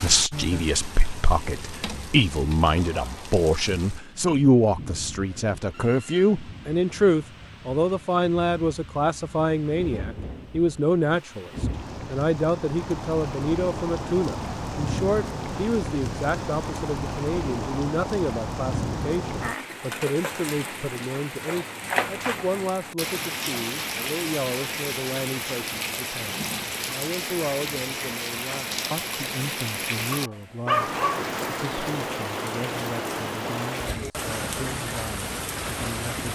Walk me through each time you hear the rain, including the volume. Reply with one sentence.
The rain can be heard from 0.0 to 36.2 s, getting louder.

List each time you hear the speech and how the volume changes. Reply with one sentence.
The speech can be heard from 0.0 to 36.2 s, getting quieter.